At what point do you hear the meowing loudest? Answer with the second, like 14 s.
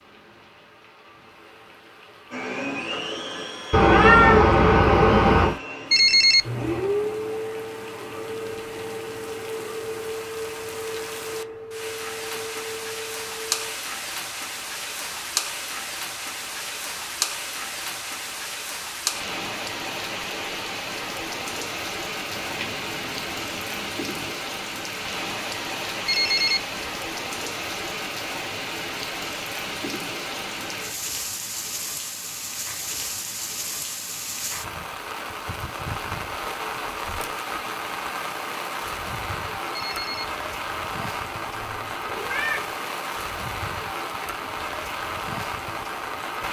4 s.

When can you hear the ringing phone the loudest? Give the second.
6 s.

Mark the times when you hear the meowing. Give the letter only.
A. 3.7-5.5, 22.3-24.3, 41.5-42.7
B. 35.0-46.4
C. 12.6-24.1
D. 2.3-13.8
A.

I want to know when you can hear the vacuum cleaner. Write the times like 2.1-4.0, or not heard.
2.3-13.8.